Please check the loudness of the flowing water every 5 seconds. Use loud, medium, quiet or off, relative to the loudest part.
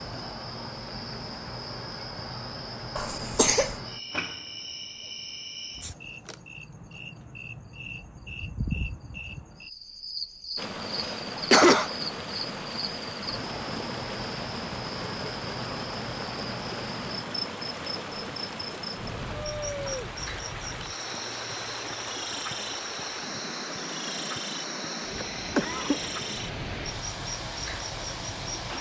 off, off, loud, loud, loud, loud.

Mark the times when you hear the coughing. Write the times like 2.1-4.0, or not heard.
3.0-3.8, 10.6-11.9, 25.1-26.0.